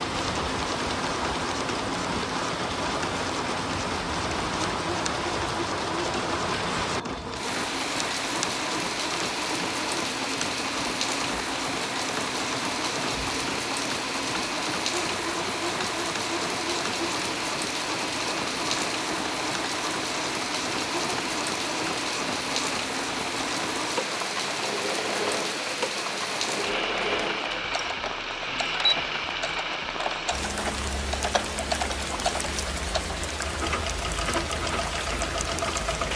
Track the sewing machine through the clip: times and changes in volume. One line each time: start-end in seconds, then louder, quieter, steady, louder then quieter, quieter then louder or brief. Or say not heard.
0.0-36.1 steady.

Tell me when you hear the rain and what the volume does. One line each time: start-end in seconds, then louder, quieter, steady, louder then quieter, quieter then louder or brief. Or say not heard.
0.0-36.1 steady.